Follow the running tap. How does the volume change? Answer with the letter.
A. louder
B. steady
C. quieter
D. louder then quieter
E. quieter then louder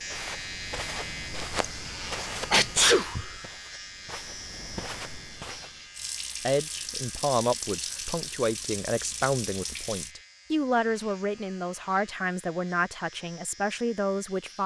B.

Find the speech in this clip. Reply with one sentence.
You can hear the speech from 6.4 to 14.6 s.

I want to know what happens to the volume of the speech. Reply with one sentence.
The loudness of the speech stays about the same.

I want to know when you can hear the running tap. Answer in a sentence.
You can hear the running tap from 5.9 to 10.2 s.